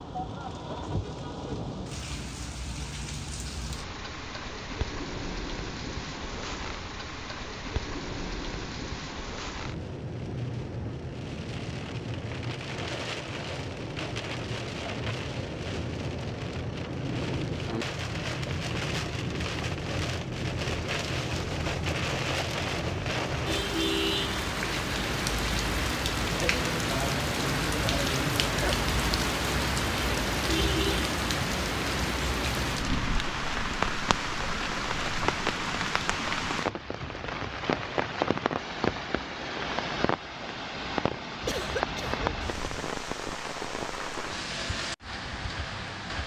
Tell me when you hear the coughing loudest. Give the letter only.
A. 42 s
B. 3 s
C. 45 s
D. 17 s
A.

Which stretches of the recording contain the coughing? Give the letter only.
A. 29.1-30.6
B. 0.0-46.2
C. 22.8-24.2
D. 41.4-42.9
D.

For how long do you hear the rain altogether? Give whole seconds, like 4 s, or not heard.
46 s.